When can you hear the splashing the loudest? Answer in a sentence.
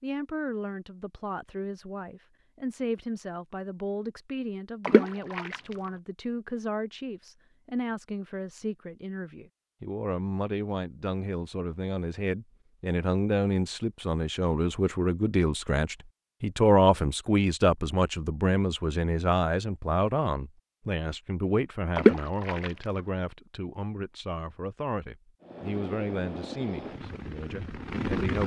The volume of the splashing peaks at 22 seconds.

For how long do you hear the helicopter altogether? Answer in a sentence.
You can hear the helicopter for 3 seconds altogether.